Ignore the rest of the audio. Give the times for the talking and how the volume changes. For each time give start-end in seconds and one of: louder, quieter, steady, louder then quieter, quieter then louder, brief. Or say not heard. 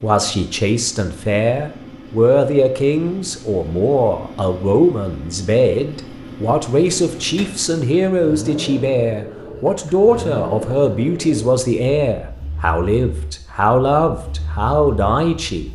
0.0-15.7 steady.